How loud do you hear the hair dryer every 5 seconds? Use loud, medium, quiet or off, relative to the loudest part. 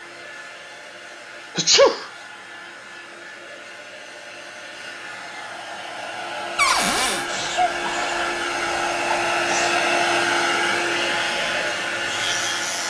quiet, loud, loud.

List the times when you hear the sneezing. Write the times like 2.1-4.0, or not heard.
1.6-2.0, 7.2-9.8.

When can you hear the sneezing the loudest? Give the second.
2 s.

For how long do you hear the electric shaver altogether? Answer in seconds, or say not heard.
2 s.